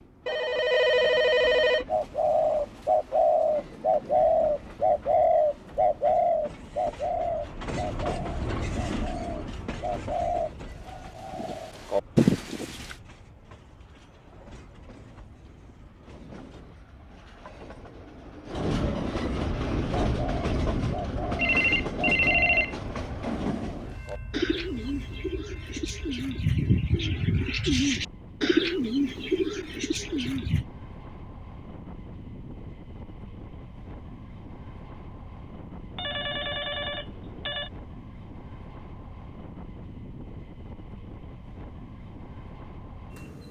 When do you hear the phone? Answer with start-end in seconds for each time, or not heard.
0.2-1.9, 21.4-22.8, 36.0-37.7.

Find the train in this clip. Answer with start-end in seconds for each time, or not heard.
0.0-43.4.